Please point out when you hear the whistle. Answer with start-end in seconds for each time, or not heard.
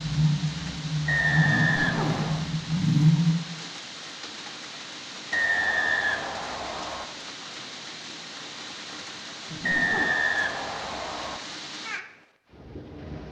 1.1-2.5, 5.3-7.0, 9.6-11.4.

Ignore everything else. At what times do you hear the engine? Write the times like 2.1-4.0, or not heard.
0.0-3.4.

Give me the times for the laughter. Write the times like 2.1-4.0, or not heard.
1.6-2.3, 9.4-10.2.